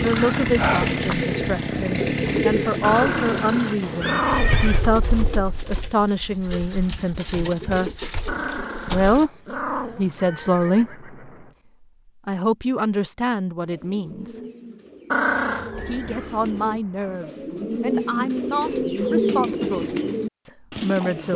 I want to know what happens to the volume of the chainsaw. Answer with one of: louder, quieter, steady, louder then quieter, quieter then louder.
quieter.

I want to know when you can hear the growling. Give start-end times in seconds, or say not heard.
2.8-4.7, 8.2-10.1, 15.1-15.7.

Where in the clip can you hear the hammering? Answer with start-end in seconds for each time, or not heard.
not heard.